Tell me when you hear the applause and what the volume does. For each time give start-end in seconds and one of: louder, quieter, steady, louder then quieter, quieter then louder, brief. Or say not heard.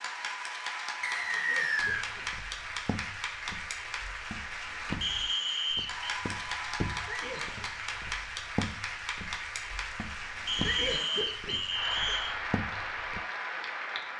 0.0-14.1 steady.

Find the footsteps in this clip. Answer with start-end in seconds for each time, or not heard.
1.8-13.2.